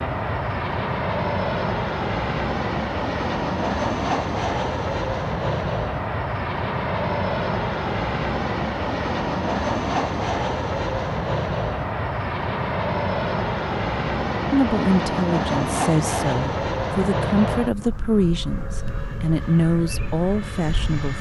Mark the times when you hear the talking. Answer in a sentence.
You can hear the talking from 14.5 to 21.1 s.